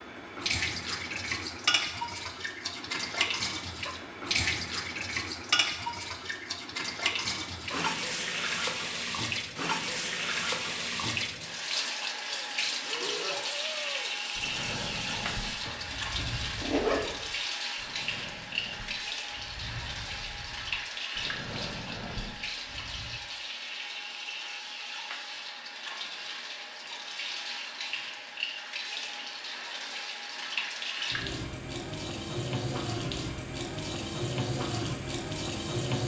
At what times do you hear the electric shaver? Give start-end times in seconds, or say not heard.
not heard.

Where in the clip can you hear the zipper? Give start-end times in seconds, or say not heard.
15.6-17.1.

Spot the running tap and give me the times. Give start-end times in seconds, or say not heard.
0.0-36.0.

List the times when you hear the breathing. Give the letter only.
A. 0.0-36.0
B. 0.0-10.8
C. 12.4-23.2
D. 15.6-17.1
C.